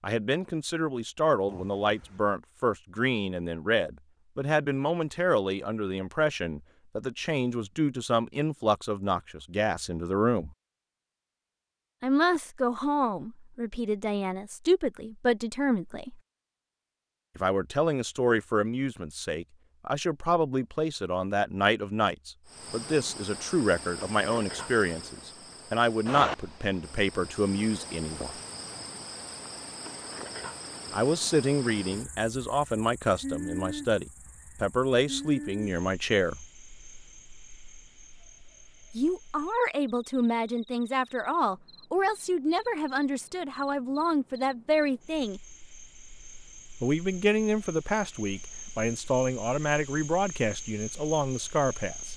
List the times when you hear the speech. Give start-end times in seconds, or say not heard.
0.0-10.5, 12.0-16.2, 17.4-28.4, 30.9-36.4, 39.0-45.4, 46.8-52.1.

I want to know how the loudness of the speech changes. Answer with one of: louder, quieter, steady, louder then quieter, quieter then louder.
steady.